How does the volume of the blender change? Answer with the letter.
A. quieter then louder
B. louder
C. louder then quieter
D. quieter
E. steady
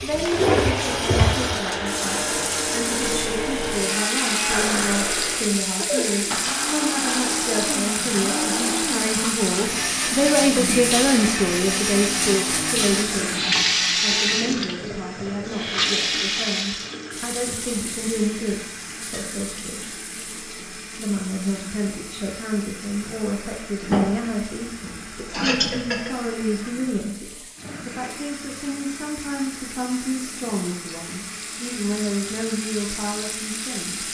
D.